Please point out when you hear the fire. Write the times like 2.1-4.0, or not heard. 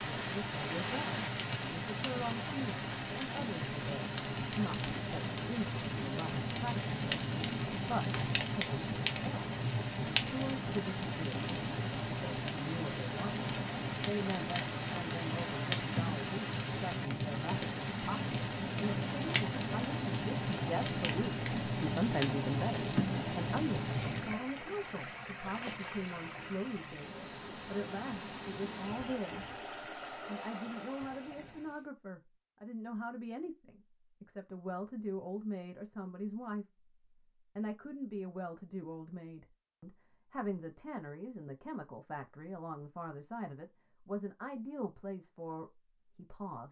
0.0-24.4.